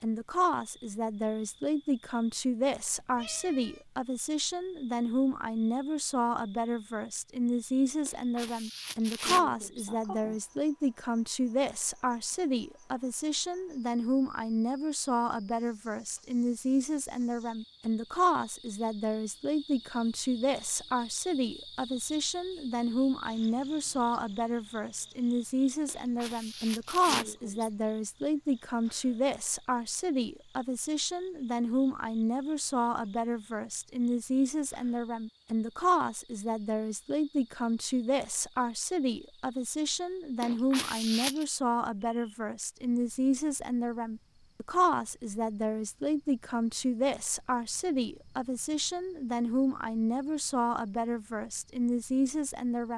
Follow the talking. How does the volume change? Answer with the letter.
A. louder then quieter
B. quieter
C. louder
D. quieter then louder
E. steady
E.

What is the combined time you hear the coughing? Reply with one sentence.
You can hear the coughing for 5 seconds altogether.